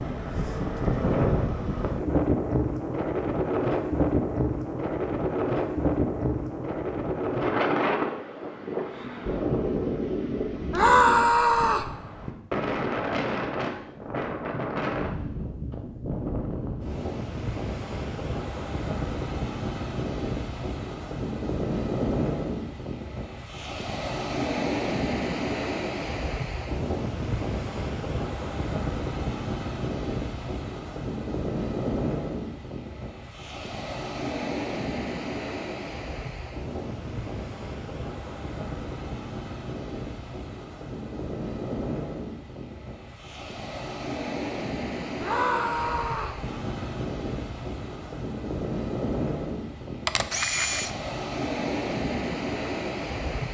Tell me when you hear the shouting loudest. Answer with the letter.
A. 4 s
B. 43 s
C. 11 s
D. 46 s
C.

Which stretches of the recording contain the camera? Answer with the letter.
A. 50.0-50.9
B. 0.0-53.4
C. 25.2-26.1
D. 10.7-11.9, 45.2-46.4
A.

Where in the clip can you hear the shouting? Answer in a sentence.
The shouting can be heard from 10.7 to 11.9 s and from 45.2 to 46.4 s.